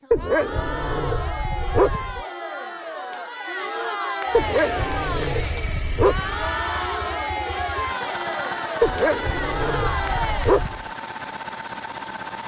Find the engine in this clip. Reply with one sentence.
You can hear the engine from 4.2 to 12.4 s.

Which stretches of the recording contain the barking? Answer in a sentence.
The barking can be heard from 0.1 to 2.2 s, from 4.3 to 6.5 s and from 8.8 to 10.8 s.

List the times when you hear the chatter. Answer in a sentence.
The chatter can be heard from 0.0 to 10.8 s.